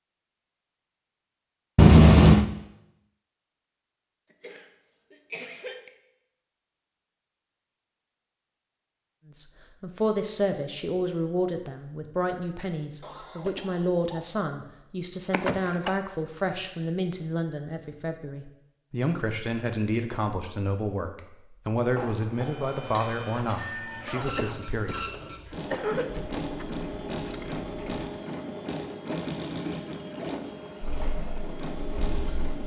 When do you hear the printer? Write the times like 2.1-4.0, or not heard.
21.9-32.6.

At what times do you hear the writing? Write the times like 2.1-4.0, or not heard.
30.8-32.6.